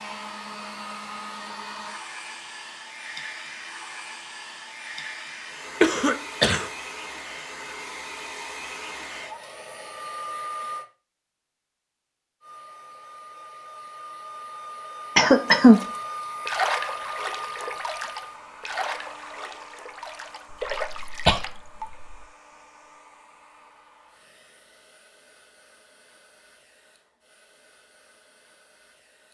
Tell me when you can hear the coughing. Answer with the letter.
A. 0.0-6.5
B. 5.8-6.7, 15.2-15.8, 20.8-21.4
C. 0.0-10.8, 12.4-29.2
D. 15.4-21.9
B.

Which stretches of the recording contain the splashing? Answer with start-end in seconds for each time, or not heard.
15.4-21.9.